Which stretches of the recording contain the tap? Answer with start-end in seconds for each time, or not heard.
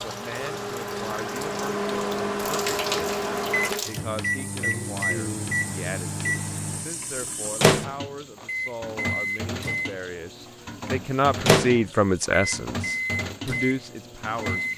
0.0-14.7.